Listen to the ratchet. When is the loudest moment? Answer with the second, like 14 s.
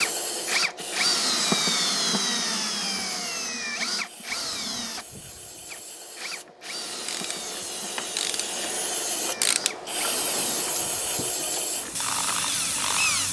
10 s.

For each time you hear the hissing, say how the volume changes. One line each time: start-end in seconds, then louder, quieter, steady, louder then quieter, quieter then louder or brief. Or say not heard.
0.0-13.2 quieter then louder.